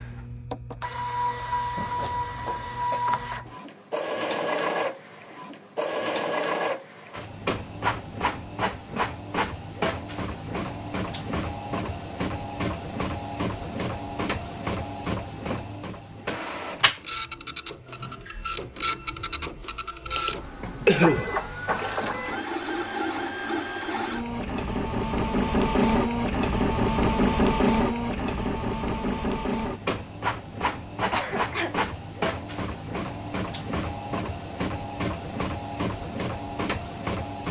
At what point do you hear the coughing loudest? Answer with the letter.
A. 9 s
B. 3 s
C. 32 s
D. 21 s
D.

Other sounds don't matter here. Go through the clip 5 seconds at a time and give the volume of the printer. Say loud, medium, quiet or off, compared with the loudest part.
medium, medium, medium, medium, medium, loud, medium, medium.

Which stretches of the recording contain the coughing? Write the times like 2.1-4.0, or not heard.
1.8-3.0, 20.1-21.9, 31.1-31.8.